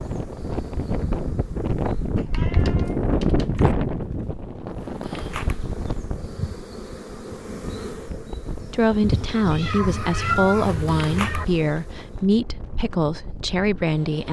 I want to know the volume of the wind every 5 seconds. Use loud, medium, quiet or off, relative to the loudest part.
loud, medium, quiet.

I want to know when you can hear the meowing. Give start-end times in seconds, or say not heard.
2.1-3.8, 9.4-11.4.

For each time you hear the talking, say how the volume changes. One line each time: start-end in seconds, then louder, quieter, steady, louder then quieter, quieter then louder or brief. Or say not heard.
8.7-14.2 steady.